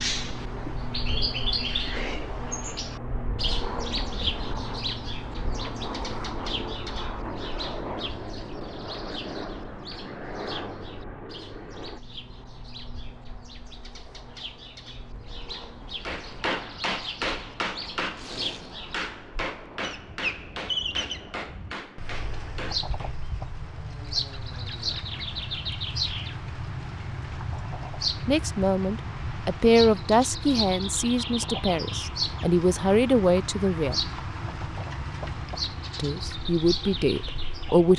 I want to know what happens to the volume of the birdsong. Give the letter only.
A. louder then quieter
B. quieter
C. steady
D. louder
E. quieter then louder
E.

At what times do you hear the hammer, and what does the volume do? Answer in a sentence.
You can hear the hammer from 16.1 to 23.2 s, getting quieter.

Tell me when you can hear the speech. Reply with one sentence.
You can hear the speech from 28.2 to 34.0 s and from 36.0 to 37.9 s.